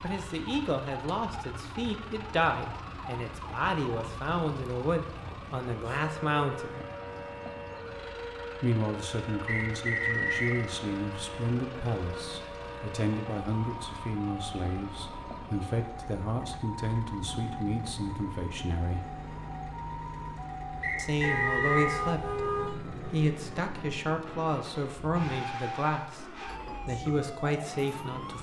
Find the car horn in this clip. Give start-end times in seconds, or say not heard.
21.2-22.8.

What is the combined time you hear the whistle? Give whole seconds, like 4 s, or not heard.
2 s.